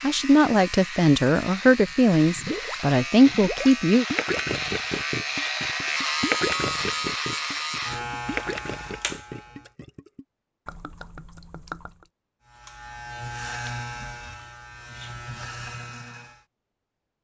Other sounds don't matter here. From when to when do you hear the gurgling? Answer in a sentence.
The gurgling can be heard from 1.8 to 12.1 s.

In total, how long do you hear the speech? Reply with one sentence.
The speech can be heard for 4 seconds in total.